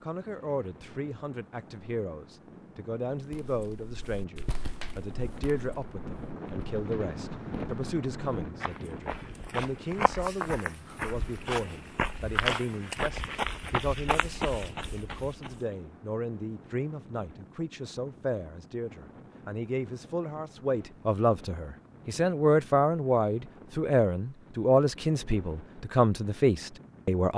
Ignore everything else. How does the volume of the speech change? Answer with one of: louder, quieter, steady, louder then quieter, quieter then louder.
louder.